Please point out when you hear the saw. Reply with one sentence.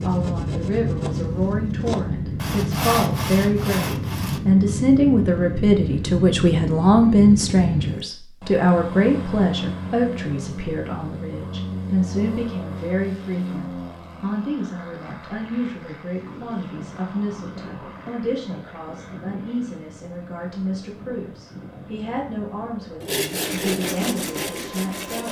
You can hear the saw from 0.0 to 4.4 s and from 23.0 to 25.2 s.